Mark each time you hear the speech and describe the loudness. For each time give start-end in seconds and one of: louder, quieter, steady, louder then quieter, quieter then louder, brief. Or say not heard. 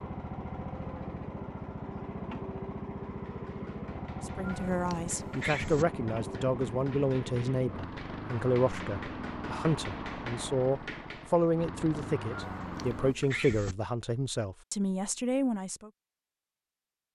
4.2-15.9 steady.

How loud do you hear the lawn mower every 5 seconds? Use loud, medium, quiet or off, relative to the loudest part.
loud, loud, loud, off.